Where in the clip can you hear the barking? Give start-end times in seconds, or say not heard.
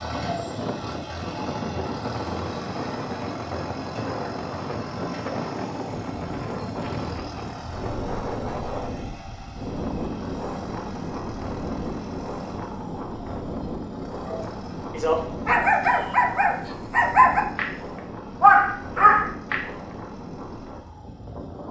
14.2-19.6.